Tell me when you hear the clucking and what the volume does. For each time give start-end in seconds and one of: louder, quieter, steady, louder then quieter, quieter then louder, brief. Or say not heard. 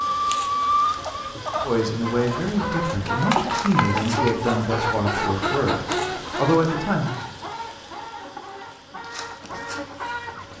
0.0-10.5 quieter.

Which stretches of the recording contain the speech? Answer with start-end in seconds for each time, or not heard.
1.6-7.2.